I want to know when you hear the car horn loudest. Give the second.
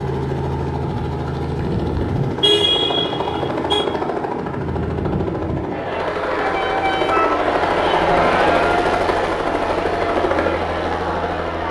3 s.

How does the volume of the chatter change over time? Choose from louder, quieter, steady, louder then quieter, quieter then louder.
louder then quieter.